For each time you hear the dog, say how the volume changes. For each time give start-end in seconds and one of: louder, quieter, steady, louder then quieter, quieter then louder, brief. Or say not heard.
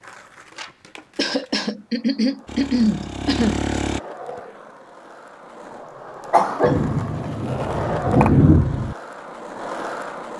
not heard.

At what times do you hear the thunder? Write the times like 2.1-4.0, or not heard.
6.6-8.9.